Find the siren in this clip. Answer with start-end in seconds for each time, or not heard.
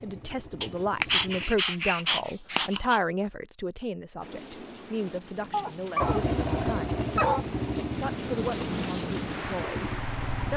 not heard.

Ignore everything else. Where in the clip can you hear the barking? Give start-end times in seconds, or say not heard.
0.6-3.0, 5.5-7.5.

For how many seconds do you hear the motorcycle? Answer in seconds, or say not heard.
6 s.